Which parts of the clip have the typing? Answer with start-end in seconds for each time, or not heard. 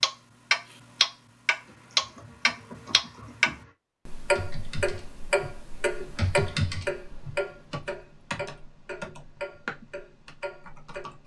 1.6-11.2.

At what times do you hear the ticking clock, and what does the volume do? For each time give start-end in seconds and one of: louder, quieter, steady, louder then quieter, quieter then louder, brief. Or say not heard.
0.0-11.2 quieter.